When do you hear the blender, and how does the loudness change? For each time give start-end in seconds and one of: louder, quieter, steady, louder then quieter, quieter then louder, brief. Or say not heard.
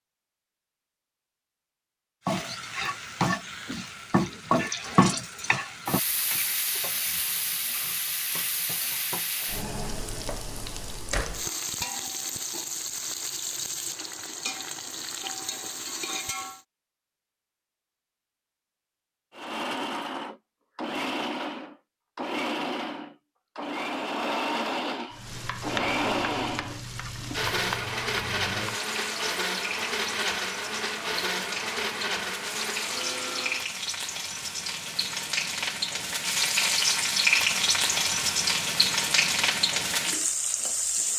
19.3-33.7 steady.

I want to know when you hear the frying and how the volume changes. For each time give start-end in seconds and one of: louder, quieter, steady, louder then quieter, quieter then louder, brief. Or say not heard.
2.2-16.6 quieter
25.1-41.1 louder.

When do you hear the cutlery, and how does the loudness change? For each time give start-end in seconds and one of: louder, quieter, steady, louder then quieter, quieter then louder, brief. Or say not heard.
not heard.